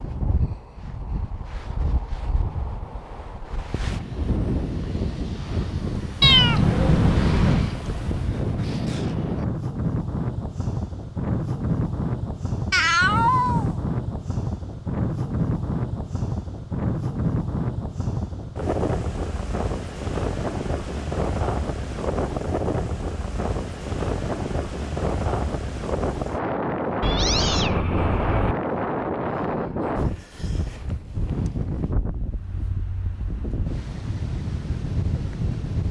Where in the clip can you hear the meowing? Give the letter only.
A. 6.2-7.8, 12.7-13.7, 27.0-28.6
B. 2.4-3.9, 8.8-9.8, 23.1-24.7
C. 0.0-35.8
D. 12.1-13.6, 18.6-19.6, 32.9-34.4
A.